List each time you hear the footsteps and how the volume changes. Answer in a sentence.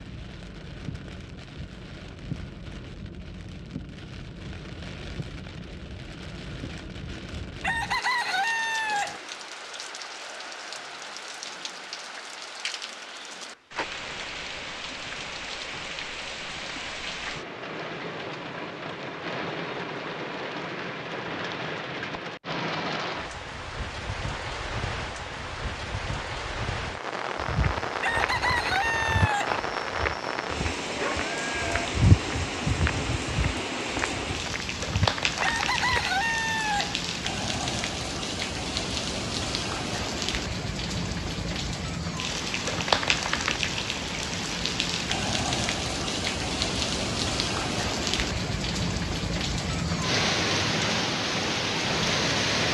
You can hear the footsteps from 27.4 to 36.2 s, getting louder then quieter.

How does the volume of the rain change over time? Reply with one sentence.
The volume of the rain goes up.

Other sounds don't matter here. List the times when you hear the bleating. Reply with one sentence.
The bleating can be heard from 30.8 to 31.9 s.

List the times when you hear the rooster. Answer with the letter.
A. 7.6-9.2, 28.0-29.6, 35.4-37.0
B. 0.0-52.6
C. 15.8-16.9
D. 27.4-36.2
A.